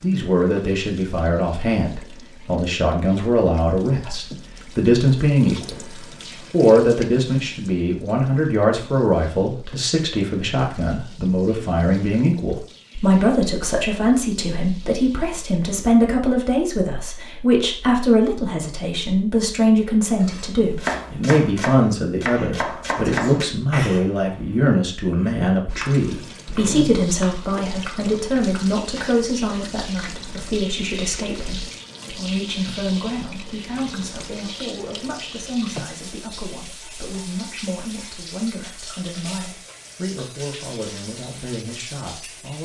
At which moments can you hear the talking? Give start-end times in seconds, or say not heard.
0.0-5.8, 6.5-42.6.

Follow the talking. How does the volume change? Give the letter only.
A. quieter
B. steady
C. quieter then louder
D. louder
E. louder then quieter
A.